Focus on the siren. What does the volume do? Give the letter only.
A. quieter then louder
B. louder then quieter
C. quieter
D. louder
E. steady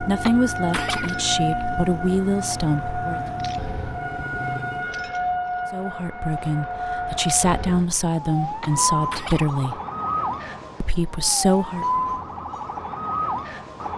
E.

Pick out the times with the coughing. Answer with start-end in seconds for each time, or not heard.
0.2-1.6, 8.6-9.5.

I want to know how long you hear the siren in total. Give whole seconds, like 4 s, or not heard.
14 s.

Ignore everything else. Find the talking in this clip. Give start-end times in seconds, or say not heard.
0.0-3.2, 5.7-9.8, 10.8-12.1.